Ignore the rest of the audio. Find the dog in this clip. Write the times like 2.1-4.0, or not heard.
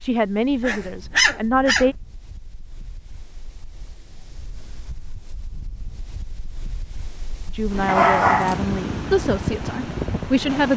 0.6-1.9, 7.8-8.7.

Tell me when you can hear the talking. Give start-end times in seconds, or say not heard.
0.0-1.9, 7.5-10.7.